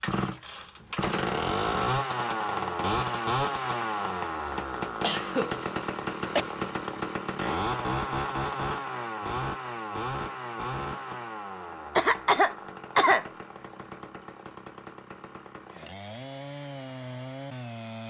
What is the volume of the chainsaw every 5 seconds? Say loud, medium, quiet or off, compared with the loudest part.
loud, loud, medium, medium.